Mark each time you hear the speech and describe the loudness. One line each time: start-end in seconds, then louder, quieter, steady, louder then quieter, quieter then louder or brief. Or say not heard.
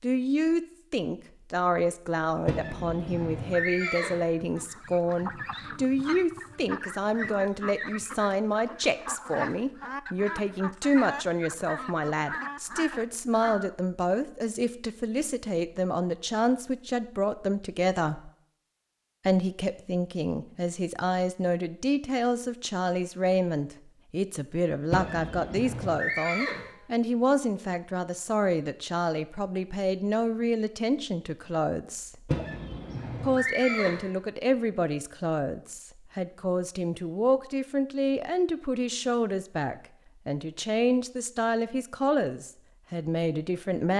0.0-18.3 steady
19.2-32.3 steady
33.2-43.9 steady.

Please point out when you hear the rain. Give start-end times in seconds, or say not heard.
not heard.